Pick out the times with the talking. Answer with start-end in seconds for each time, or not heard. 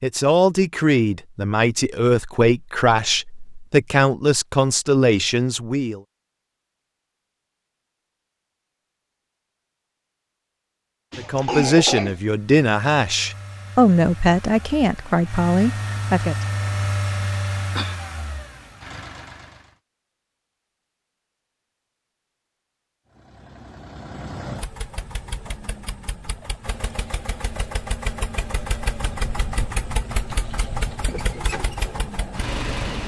0.0-6.0, 11.2-16.4.